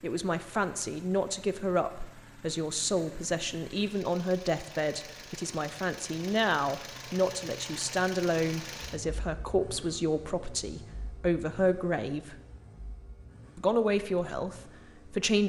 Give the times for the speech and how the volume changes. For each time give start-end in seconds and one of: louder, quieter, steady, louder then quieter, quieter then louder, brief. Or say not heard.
0.0-12.3 steady
13.6-15.4 brief.